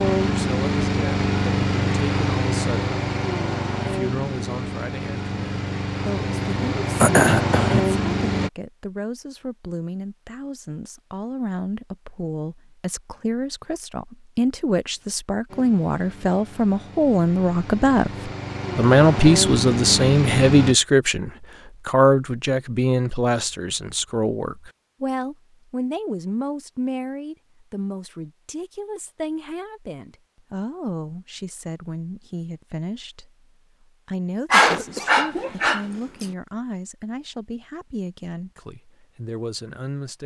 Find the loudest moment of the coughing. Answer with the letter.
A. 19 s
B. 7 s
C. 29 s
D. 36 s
B.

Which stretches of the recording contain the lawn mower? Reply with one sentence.
You can hear the lawn mower from 0.0 to 8.5 s and from 15.4 to 20.8 s.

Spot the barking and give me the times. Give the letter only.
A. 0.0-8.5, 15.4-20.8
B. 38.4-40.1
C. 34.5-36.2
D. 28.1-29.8
C.